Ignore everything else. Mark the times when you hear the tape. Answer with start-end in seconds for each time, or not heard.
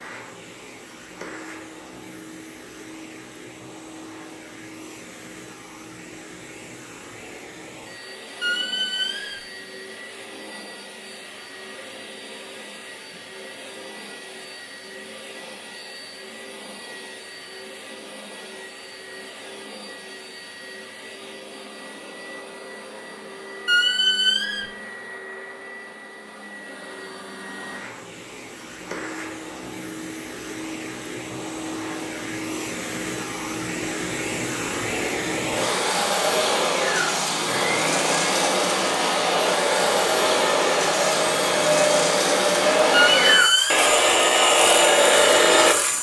not heard.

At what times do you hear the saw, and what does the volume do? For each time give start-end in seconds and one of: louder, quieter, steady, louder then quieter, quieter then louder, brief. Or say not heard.
35.5-45.8 louder.